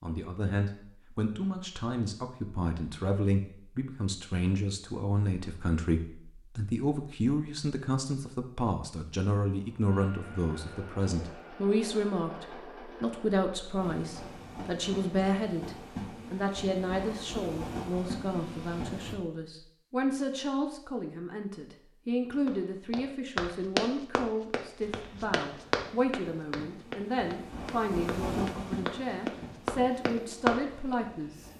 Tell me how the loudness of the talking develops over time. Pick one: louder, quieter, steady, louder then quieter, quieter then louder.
steady.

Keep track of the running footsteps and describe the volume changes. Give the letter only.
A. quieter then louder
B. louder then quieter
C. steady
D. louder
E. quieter
A.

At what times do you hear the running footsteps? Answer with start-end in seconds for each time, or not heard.
22.4-30.9.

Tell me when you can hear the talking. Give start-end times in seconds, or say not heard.
0.0-31.5.